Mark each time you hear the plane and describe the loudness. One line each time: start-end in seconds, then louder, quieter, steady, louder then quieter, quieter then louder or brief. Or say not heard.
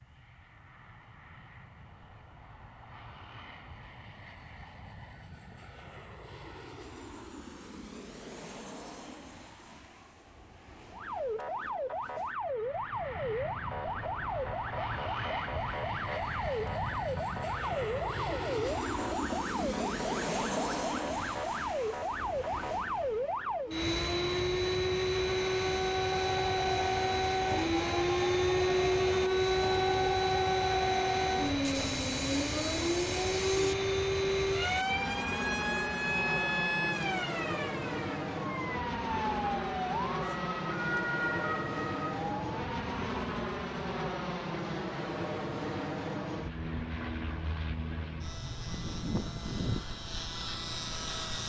0.0-51.4 louder.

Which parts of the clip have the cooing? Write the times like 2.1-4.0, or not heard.
26.2-33.8.